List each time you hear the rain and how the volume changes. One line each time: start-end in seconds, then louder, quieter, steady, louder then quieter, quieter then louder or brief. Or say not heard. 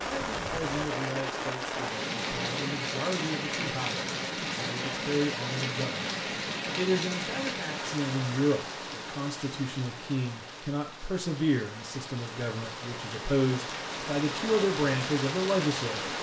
0.0-16.1 quieter then louder.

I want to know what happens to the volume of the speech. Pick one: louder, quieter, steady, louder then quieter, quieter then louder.
louder.